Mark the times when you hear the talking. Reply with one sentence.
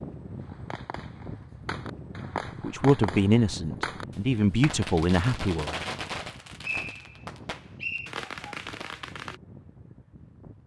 You can hear the talking from 2.6 to 5.8 s.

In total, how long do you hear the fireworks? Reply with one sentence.
You can hear the fireworks for 9 seconds altogether.